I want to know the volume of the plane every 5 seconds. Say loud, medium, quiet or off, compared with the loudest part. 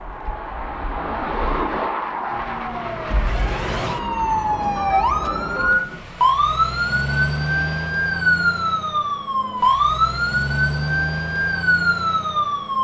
loud, quiet, off.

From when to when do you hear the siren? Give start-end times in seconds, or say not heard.
2.2-12.7.